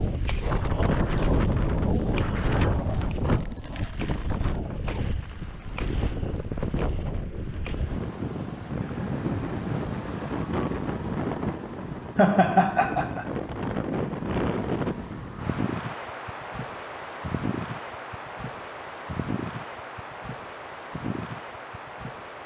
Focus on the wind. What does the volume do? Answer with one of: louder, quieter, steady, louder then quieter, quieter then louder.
quieter.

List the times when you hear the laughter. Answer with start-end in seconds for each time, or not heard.
12.2-13.2.